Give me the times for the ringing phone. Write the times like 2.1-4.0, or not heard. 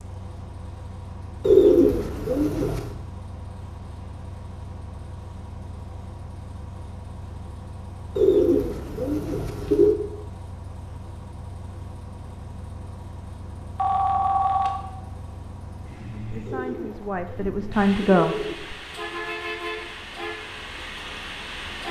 13.8-14.8.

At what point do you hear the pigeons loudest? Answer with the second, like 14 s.
2 s.